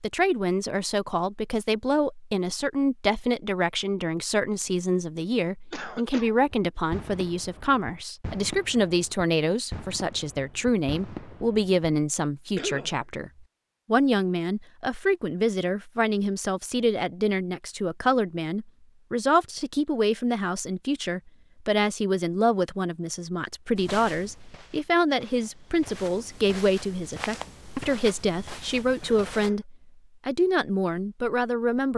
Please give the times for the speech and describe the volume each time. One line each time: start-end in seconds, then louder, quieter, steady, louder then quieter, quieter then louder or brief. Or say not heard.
0.0-31.9 steady.